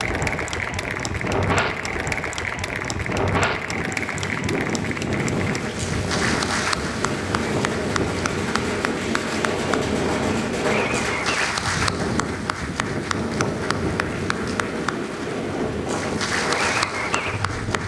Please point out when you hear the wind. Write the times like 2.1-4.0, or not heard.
0.0-17.8.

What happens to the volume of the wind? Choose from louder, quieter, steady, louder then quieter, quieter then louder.
steady.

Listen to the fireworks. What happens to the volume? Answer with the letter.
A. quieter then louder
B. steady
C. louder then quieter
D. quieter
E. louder
E.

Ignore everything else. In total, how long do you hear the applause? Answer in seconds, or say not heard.
18 s.